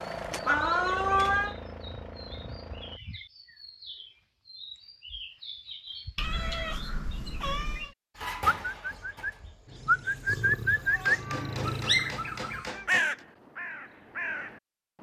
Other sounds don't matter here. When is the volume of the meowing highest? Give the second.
1 s.